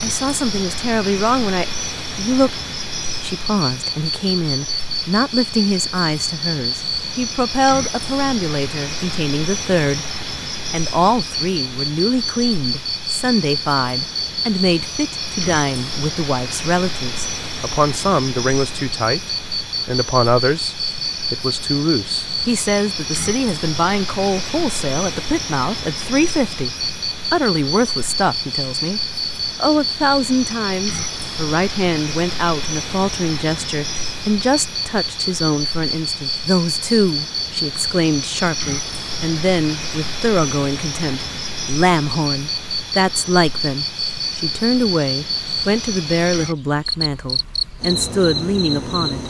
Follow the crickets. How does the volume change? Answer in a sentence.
The loudness of the crickets stays about the same.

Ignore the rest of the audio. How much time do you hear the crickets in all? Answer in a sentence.
The crickets can be heard for 49 seconds in total.